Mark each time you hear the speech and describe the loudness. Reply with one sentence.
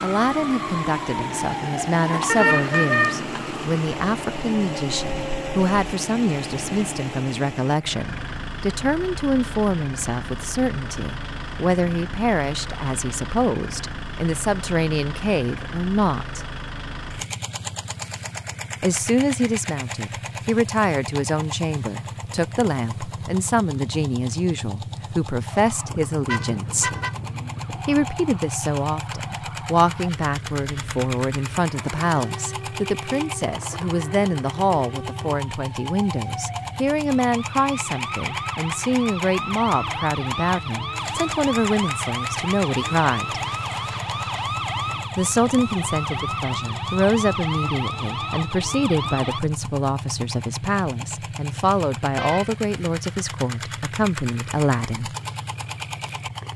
You can hear the speech from 0.0 to 16.4 s, at a steady volume; from 18.8 to 26.9 s, at a steady volume; from 27.9 to 43.4 s, at a steady volume; and from 45.1 to 55.1 s, at a steady volume.